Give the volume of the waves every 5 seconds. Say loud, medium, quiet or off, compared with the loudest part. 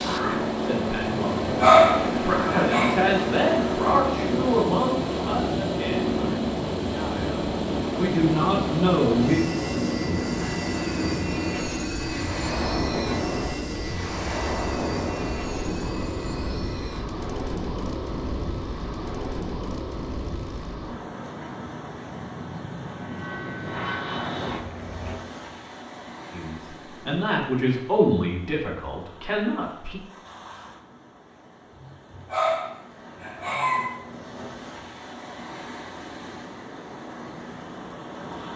loud, loud, loud, loud, medium, quiet, quiet, medium.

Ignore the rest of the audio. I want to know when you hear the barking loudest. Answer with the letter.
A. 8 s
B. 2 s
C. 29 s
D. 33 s
B.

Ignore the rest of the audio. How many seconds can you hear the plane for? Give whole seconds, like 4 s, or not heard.
25 s.